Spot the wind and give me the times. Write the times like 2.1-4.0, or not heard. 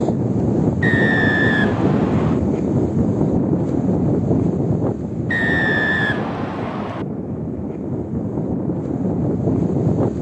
0.0-10.1.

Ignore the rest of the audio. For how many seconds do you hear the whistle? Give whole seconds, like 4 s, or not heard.
3 s.